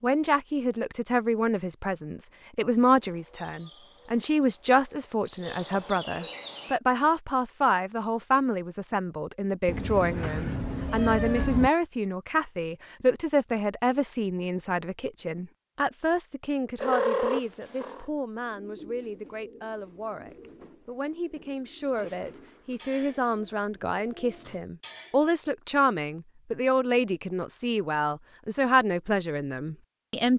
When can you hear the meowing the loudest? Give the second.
17 s.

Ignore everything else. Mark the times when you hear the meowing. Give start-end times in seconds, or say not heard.
9.7-11.7, 16.8-18.1.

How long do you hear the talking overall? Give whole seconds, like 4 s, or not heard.
30 s.